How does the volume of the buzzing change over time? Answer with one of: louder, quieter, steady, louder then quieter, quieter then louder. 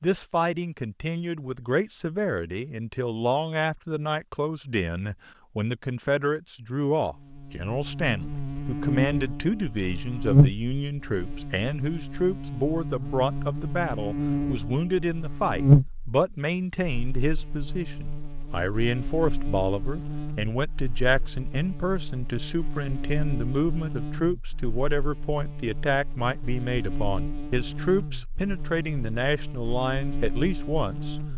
quieter.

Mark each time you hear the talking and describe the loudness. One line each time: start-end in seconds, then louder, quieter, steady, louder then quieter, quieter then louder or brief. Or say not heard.
0.0-31.1 steady.